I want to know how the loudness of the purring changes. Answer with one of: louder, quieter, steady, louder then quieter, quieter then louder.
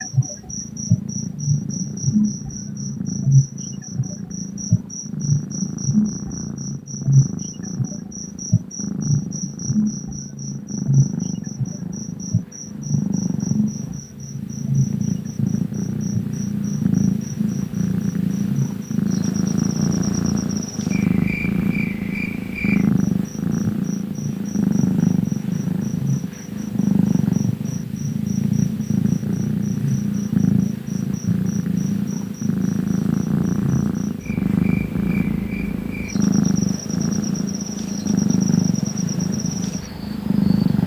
louder.